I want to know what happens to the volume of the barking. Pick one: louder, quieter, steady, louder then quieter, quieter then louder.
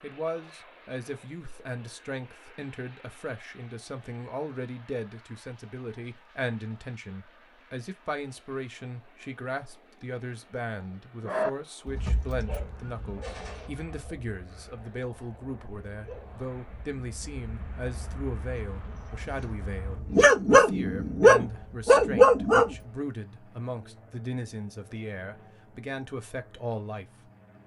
quieter then louder.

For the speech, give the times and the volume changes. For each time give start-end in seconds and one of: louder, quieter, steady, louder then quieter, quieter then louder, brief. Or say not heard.
0.0-27.1 steady.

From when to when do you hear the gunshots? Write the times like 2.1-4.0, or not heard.
13.2-13.7.